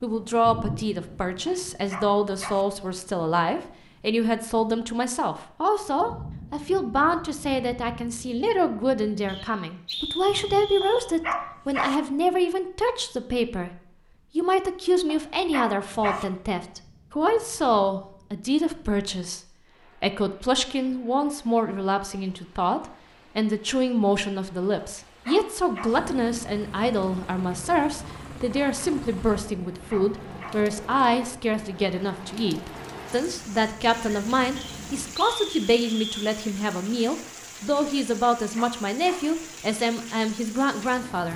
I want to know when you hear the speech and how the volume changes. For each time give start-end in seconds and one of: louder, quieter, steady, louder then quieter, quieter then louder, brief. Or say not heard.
0.0-41.3 steady.